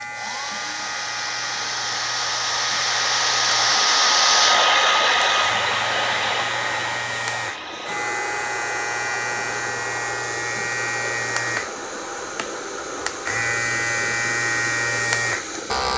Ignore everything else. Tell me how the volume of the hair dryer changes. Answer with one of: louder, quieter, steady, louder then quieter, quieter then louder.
louder then quieter.